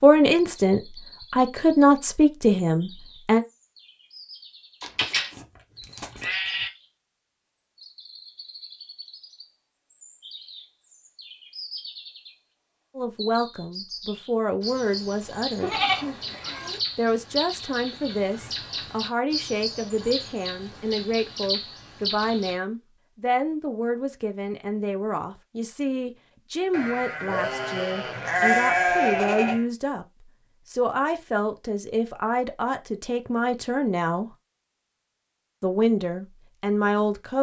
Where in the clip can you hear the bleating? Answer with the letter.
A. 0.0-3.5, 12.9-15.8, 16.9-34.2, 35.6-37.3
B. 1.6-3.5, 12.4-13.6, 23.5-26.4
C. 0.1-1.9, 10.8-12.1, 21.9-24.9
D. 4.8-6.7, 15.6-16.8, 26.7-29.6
D.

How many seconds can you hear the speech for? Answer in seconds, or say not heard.
25 s.